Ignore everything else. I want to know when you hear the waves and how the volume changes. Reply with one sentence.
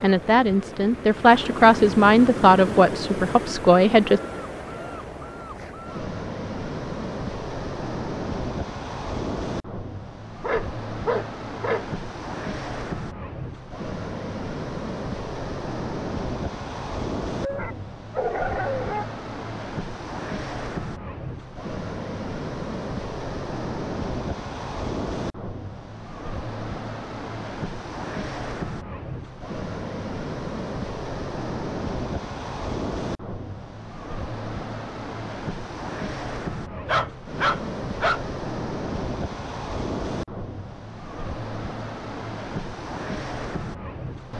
The waves can be heard from 0.0 to 44.3 s, at a steady volume.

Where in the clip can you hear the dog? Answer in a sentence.
You can hear the dog from 10.4 to 11.8 s, from 17.4 to 19.1 s and from 36.7 to 38.2 s.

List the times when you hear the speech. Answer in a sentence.
You can hear the speech from 0.0 to 4.2 s.